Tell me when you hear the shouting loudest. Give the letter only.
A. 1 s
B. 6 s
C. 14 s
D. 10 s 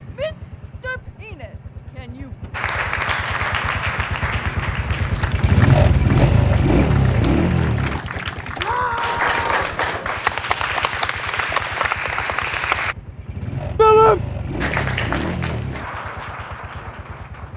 C.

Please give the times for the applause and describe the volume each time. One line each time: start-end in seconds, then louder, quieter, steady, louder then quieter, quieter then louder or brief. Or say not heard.
2.5-12.9 quieter then louder
14.6-17.5 brief.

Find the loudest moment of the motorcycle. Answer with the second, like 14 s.
6 s.